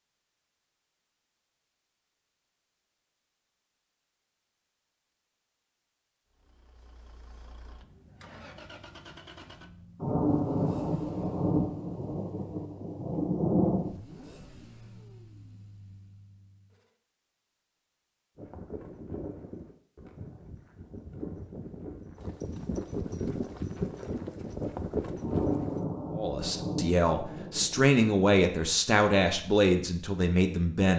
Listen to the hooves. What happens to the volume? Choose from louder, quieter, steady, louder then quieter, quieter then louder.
louder.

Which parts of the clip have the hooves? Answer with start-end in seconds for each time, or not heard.
18.4-25.9.